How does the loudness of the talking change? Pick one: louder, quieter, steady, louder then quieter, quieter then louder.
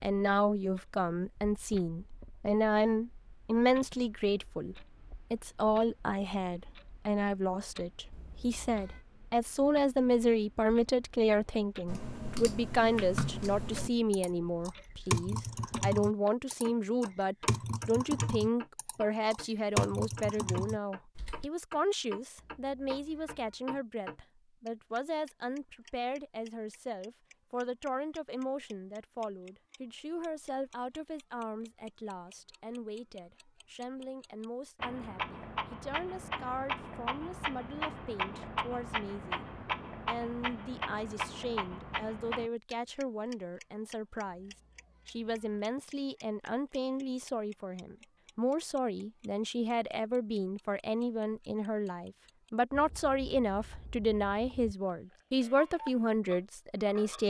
quieter then louder.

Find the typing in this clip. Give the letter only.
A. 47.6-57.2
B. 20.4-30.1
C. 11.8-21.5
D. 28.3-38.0
C.